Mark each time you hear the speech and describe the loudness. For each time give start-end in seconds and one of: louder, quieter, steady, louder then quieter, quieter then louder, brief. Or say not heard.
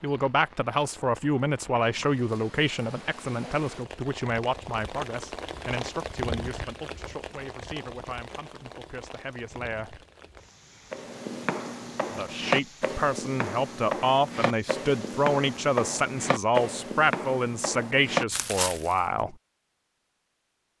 0.0-10.0 quieter
12.1-19.4 steady.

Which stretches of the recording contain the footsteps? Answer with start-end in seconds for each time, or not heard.
10.9-18.9.